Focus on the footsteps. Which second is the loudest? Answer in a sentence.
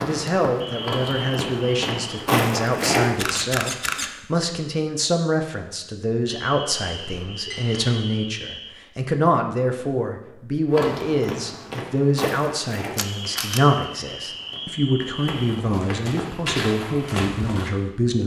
The loudest moment of the footsteps is at 2 seconds.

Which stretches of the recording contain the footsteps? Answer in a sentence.
The footsteps can be heard from 0.0 to 3.4 s and from 10.7 to 17.7 s.